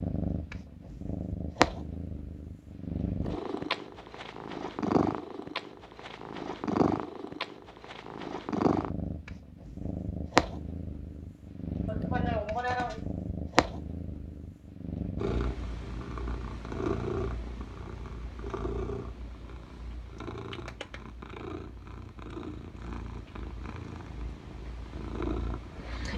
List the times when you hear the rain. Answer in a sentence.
You can't hear the rain here.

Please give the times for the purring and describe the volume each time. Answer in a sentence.
You can hear the purring from 0.0 to 26.1 s, getting quieter.